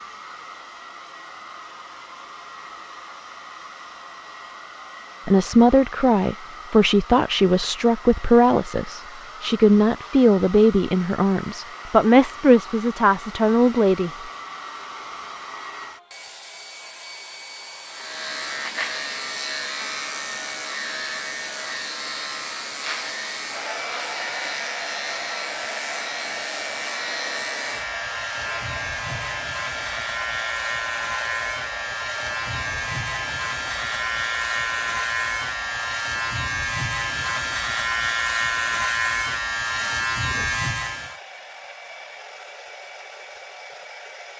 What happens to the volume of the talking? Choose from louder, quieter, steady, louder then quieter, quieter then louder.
steady.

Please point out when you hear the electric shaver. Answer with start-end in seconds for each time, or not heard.
17.9-41.2.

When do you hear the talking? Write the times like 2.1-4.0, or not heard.
5.2-14.1.